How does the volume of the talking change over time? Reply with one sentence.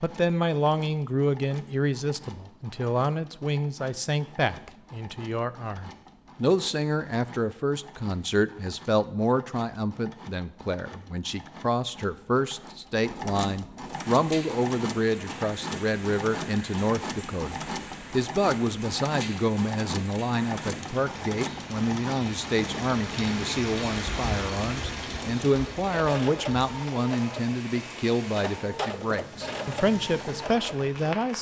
The loudness of the talking stays about the same.